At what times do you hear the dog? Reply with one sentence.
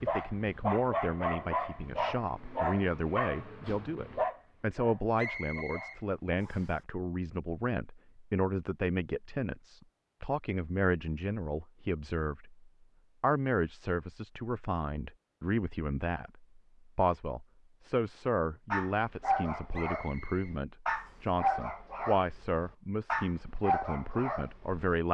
You can hear the dog from 0.0 to 6.3 s and from 18.7 to 25.0 s.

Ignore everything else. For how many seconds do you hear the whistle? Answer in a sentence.
You can hear the whistle for 3 seconds altogether.